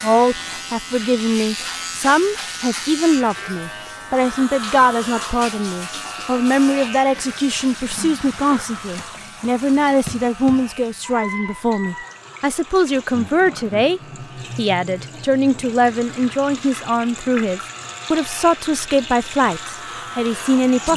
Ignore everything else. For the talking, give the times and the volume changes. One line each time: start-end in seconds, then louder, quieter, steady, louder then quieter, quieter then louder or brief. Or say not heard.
0.0-20.9 steady.